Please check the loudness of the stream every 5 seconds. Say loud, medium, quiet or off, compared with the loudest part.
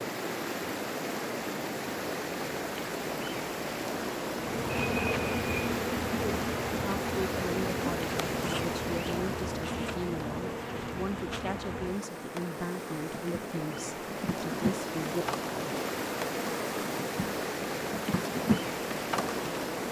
loud, loud, medium, loud.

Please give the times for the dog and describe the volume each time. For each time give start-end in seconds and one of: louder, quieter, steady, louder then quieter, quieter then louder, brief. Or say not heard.
not heard.